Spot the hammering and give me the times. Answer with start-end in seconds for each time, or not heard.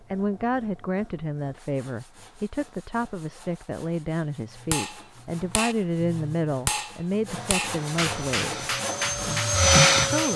4.5-10.3.